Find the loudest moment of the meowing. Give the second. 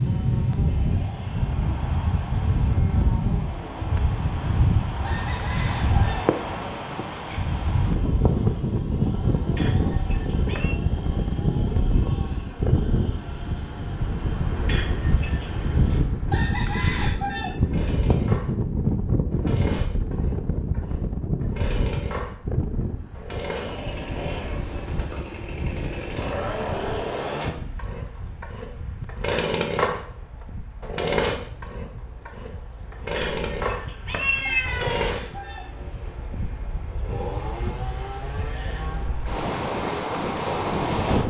34 s.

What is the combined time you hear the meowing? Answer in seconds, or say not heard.
4 s.